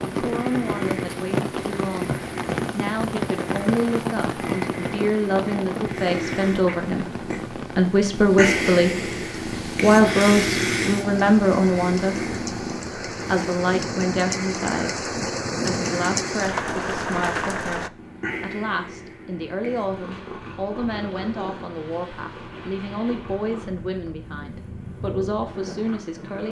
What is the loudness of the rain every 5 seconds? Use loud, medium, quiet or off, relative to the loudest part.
loud, medium, medium, loud, off, off.